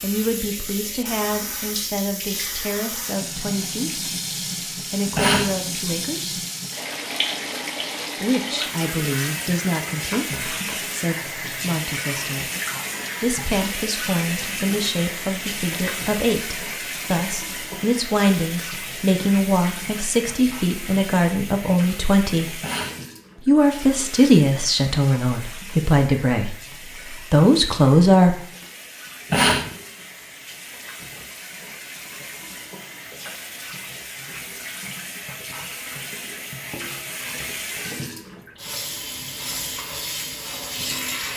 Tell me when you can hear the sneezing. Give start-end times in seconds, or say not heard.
5.2-5.6, 22.6-23.1, 29.3-29.8.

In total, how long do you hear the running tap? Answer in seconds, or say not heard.
41 s.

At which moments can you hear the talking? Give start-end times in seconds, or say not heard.
0.0-4.1, 4.9-6.4, 8.2-12.5, 13.2-22.6, 23.4-28.4.